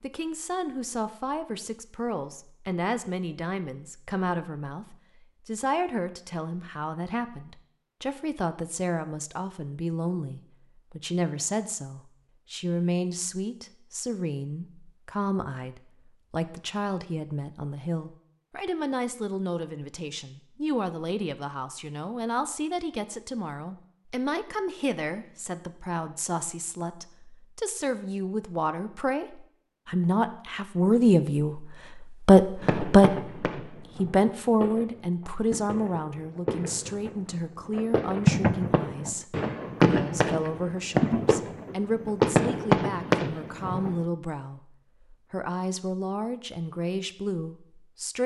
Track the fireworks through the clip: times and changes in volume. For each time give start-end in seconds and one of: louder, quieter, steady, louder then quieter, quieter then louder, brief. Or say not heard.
32.6-44.0 louder.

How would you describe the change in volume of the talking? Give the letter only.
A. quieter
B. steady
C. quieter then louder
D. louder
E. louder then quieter
E.